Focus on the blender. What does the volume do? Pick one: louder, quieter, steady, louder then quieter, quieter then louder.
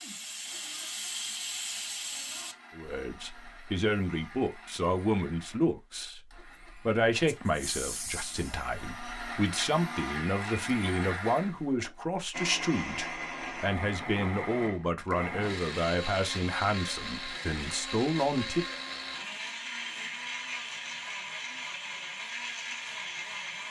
louder.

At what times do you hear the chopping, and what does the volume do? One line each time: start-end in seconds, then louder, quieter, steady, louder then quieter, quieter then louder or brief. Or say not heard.
not heard.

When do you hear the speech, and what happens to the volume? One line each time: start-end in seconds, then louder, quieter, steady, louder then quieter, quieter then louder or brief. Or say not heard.
2.8-18.6 steady.